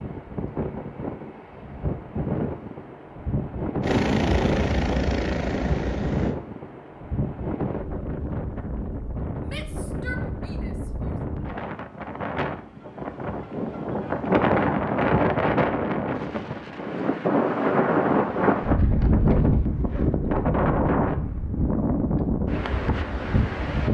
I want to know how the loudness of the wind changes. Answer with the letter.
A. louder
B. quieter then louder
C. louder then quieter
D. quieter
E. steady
A.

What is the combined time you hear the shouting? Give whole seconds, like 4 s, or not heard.
2 s.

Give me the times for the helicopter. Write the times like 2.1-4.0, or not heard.
3.8-6.3.